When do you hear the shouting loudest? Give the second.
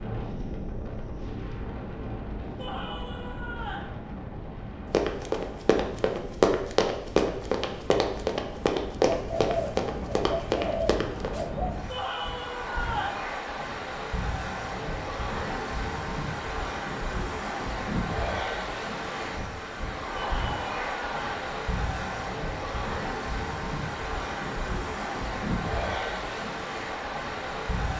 13 s.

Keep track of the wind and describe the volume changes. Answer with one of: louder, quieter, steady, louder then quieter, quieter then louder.
louder.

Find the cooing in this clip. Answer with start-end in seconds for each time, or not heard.
9.1-11.8.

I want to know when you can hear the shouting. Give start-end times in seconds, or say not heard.
2.5-3.9, 11.8-13.2, 20.1-21.4.